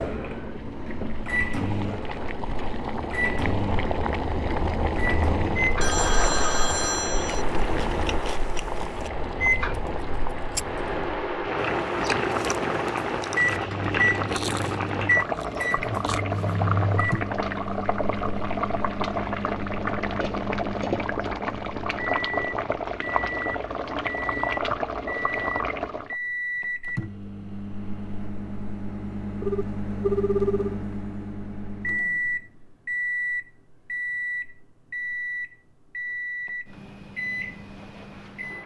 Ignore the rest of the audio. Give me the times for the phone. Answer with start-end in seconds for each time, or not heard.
5.8-7.5, 29.4-30.8.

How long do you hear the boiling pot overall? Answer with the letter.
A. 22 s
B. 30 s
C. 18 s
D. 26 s
D.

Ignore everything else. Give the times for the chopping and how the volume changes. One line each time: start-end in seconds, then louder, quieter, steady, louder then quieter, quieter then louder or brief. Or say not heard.
not heard.